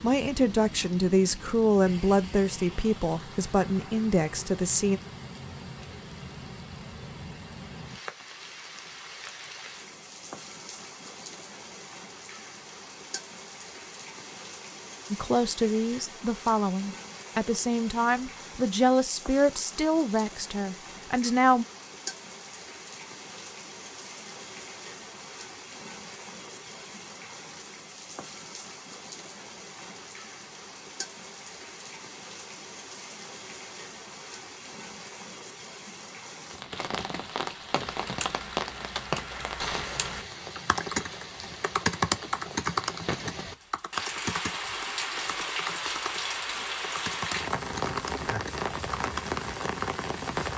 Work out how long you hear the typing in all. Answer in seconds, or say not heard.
11 s.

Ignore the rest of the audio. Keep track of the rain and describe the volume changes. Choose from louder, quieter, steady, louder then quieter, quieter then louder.
louder.